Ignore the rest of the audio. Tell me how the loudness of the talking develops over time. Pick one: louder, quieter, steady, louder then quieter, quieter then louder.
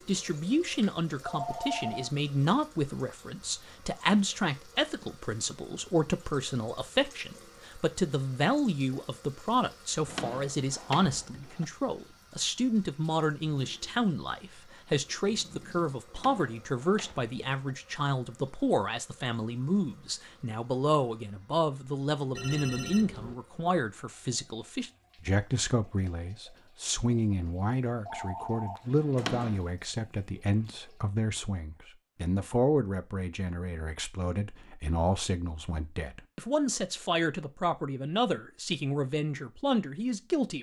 steady.